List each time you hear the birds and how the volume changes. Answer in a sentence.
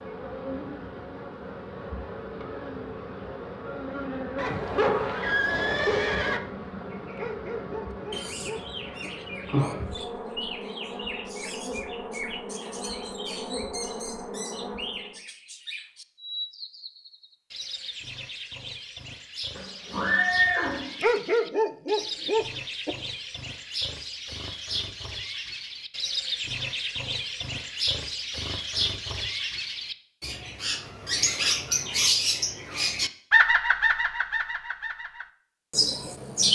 The birds can be heard from 8.1 to 36.4 s, getting louder.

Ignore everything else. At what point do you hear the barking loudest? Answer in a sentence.
The volume of the barking peaks at 21 seconds.